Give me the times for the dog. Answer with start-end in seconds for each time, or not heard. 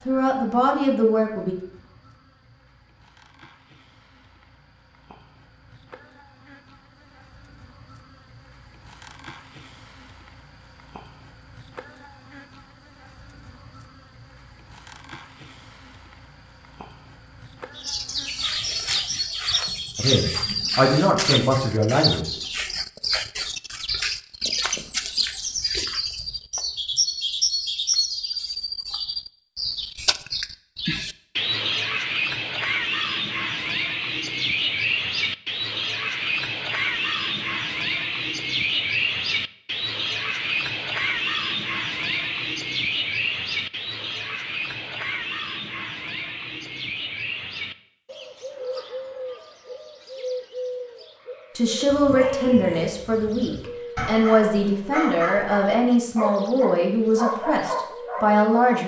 51.9-58.8.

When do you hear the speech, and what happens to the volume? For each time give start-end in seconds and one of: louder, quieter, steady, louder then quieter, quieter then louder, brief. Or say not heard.
0.1-1.6 brief
19.9-22.2 brief
51.5-58.8 steady.